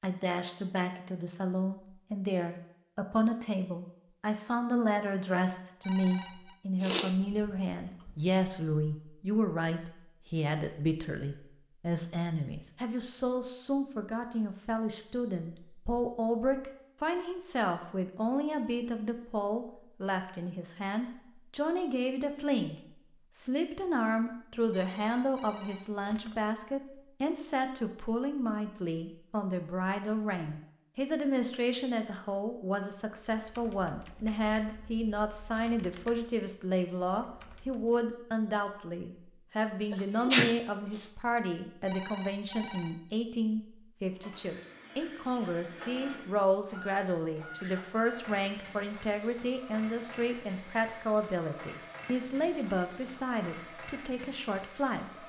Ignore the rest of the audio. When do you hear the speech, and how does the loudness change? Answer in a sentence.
The speech can be heard from 0.0 to 22.8 s, at a steady volume; and from 23.4 to 55.2 s, at a steady volume.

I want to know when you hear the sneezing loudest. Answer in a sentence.
The loudest moment of the sneezing is at 40 seconds.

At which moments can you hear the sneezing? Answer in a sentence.
The sneezing can be heard from 6.8 to 8.1 s and from 39.9 to 41.0 s.